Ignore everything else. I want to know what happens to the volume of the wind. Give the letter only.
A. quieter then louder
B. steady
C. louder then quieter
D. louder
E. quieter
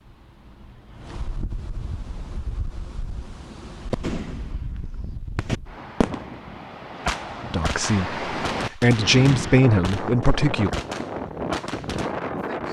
D.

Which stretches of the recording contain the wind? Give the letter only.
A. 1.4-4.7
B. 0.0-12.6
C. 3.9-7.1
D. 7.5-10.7
B.